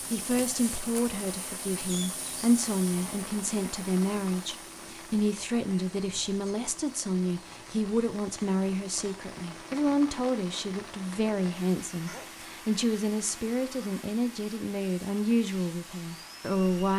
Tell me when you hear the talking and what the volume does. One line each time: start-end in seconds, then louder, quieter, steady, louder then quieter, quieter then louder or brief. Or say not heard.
0.1-16.9 steady.